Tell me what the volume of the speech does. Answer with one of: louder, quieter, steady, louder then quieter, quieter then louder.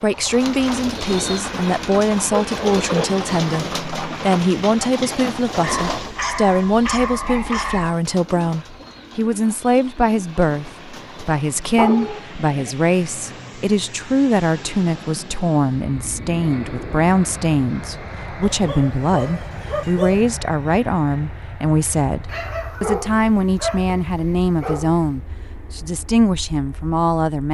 steady.